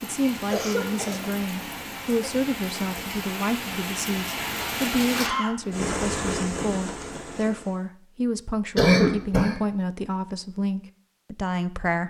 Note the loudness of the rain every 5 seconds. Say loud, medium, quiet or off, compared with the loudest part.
loud, loud, off.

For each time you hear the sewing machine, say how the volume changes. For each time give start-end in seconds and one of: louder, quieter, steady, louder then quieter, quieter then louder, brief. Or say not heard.
not heard.